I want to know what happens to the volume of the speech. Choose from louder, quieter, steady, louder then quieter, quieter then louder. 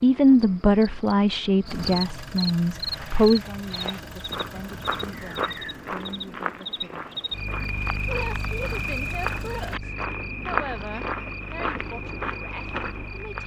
quieter.